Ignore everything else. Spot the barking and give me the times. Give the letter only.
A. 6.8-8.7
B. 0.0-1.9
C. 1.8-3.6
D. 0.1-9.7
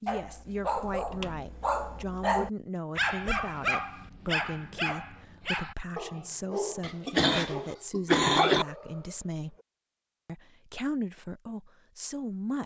D.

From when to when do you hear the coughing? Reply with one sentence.
The coughing can be heard from 6.8 to 8.7 s.